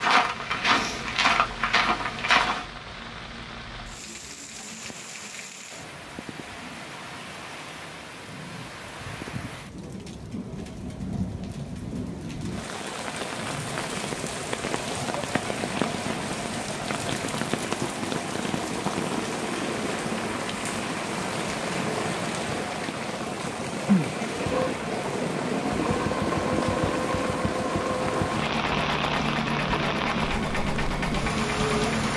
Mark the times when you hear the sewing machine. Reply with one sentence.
The sewing machine can be heard from 24.2 to 32.1 s.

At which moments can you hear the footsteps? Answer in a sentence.
You can hear the footsteps from 0.0 to 2.6 s.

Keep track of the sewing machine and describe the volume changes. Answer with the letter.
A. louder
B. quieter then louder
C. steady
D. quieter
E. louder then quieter
C.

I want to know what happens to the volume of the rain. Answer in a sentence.
The loudness of the rain goes up.